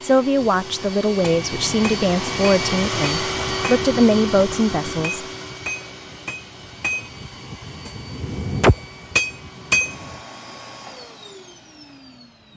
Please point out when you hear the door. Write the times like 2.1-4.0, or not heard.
not heard.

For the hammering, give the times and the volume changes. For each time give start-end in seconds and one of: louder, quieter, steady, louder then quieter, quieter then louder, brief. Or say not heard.
0.3-10.1 louder.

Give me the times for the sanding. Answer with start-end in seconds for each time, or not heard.
not heard.